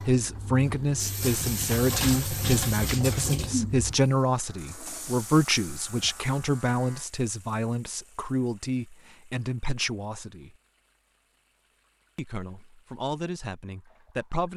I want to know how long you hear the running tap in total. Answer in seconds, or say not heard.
14 s.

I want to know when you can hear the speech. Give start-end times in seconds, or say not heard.
0.1-10.6, 12.2-14.5.